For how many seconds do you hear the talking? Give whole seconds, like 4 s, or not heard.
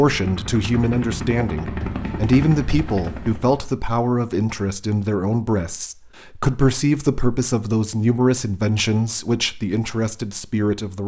11 s.